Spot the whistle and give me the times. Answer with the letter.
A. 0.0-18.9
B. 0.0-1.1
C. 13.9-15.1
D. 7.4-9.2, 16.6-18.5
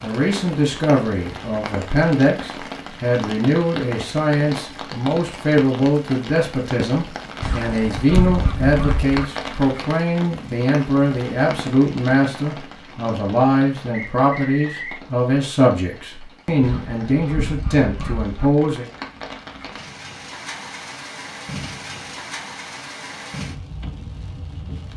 C.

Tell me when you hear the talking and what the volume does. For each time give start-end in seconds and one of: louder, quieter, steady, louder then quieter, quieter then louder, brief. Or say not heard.
0.0-18.9 steady.